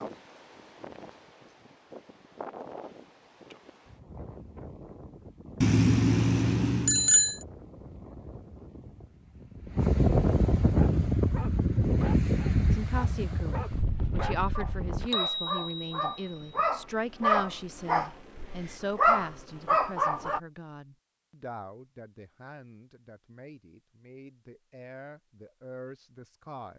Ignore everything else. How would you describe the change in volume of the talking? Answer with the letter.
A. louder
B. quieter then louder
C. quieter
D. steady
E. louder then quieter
C.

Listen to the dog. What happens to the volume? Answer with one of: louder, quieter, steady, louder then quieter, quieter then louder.
louder.